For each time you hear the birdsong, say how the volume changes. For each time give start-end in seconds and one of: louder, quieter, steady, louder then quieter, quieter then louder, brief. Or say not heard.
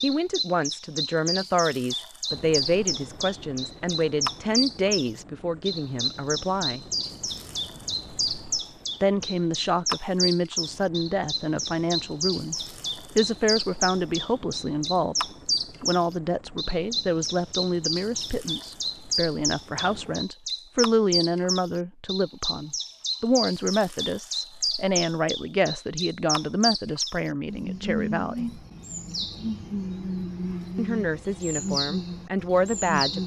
0.0-33.2 steady.